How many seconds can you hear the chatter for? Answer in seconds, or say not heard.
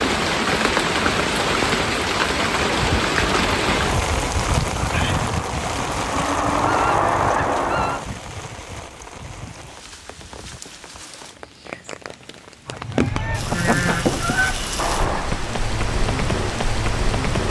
not heard.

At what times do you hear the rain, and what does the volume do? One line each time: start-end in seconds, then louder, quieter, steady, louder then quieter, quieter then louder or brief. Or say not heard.
0.0-17.4 quieter then louder.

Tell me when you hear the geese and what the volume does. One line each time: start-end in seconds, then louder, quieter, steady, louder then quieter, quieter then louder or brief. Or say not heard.
2.7-8.1 louder
12.7-15.4 brief.